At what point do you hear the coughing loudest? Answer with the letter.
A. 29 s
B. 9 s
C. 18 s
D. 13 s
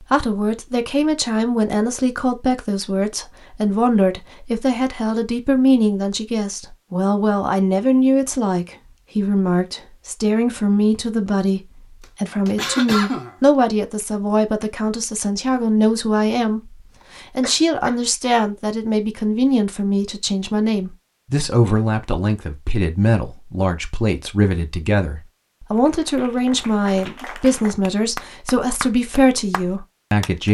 D.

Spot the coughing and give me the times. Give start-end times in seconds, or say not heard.
12.0-13.3, 17.4-17.9.